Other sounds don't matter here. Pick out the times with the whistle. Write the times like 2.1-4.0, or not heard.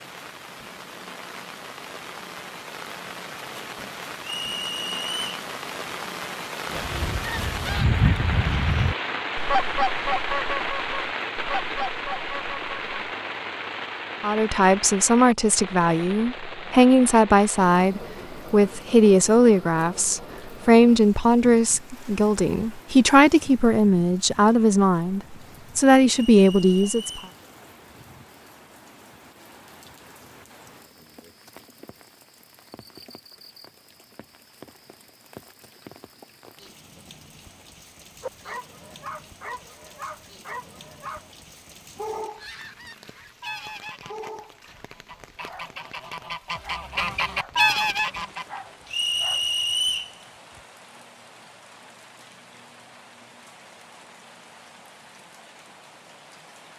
4.2-5.3, 26.3-27.4, 48.9-50.1.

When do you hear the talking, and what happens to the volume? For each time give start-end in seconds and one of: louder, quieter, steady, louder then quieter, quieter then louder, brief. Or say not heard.
14.2-27.2 steady.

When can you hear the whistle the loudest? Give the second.
50 s.